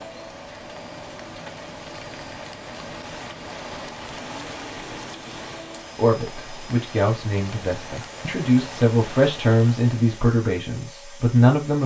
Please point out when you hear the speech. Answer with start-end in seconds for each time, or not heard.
6.0-11.8.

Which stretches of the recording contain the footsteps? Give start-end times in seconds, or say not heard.
not heard.